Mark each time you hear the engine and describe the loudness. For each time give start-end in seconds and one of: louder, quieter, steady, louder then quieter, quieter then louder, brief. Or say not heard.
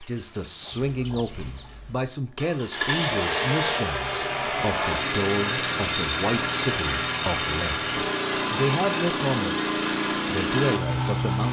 0.0-11.4 louder.